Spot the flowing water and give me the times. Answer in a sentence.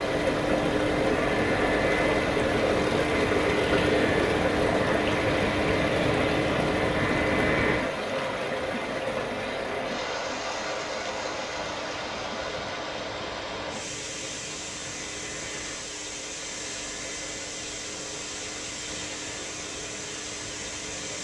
The flowing water can be heard from 0.0 to 21.2 s.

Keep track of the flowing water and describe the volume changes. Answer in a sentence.
The volume of the flowing water goes down.